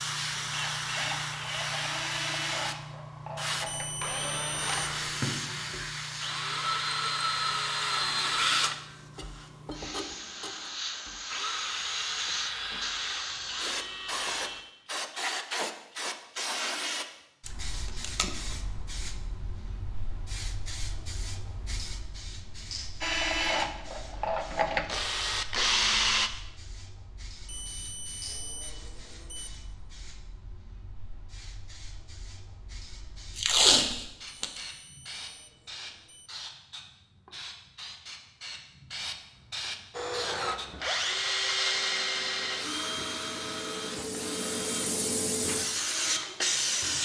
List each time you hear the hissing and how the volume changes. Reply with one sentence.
The hissing can be heard from 0.0 to 47.0 s, getting quieter then louder.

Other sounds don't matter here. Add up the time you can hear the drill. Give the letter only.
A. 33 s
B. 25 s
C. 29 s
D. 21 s
B.